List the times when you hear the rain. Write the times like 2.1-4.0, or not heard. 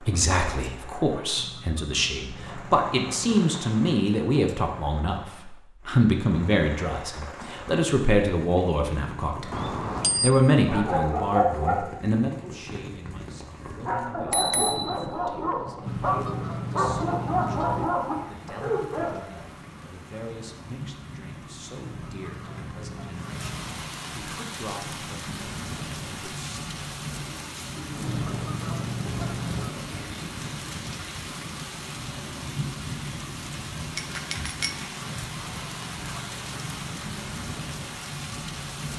0.0-38.9.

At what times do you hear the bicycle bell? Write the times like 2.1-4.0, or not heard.
9.5-10.3, 14.1-15.7, 34.0-34.8.